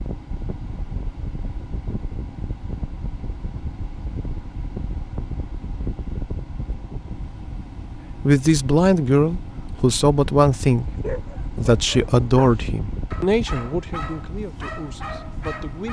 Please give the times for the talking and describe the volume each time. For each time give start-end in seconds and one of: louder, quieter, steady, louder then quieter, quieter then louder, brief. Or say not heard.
8.2-15.8 quieter.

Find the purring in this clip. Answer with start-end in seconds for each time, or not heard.
not heard.